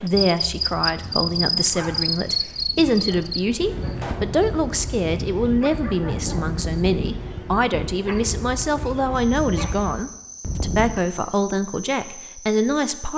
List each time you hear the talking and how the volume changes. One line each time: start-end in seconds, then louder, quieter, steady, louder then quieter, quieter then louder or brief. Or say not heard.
0.0-13.1 steady.